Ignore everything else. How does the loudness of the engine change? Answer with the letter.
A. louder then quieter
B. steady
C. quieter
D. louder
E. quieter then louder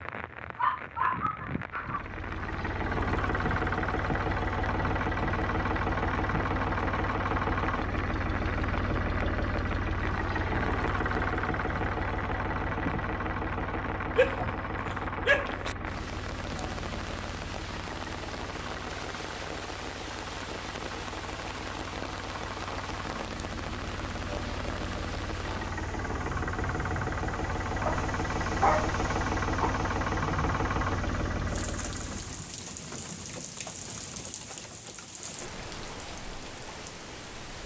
E.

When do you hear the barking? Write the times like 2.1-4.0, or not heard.
0.6-2.0, 14.2-15.8, 27.9-29.7.